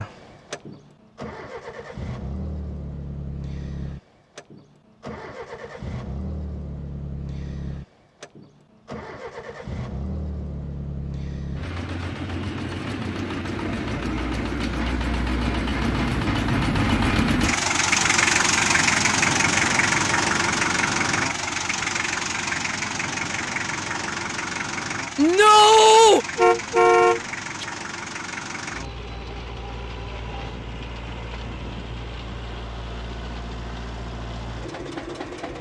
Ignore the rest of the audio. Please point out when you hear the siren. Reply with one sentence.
The siren can't be heard in this clip.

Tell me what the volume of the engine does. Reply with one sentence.
The volume of the engine goes up, then down.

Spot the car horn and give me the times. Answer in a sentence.
The car horn can be heard from 26.4 to 27.6 s.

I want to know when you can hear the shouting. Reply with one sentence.
You can hear the shouting from 25.1 to 26.2 s.